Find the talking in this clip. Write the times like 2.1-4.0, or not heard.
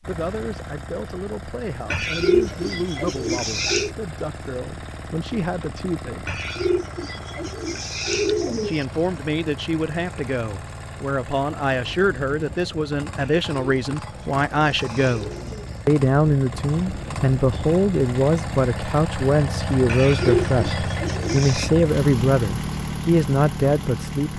0.1-6.4, 8.7-24.3.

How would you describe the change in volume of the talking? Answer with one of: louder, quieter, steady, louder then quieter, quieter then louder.
louder.